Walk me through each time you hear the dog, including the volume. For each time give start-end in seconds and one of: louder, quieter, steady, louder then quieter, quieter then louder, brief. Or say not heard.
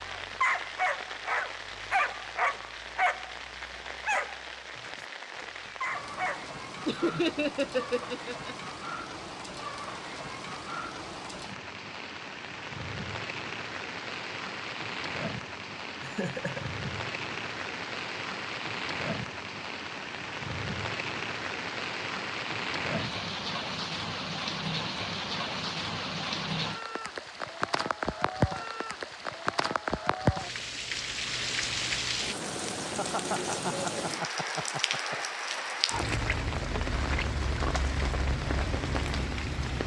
0.0-6.5 quieter.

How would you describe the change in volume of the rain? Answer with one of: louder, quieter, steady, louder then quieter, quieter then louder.
louder.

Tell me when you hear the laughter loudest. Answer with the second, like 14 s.
7 s.